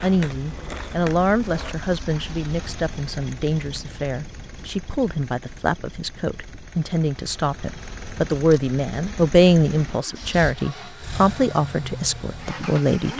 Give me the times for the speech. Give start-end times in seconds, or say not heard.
0.0-13.1.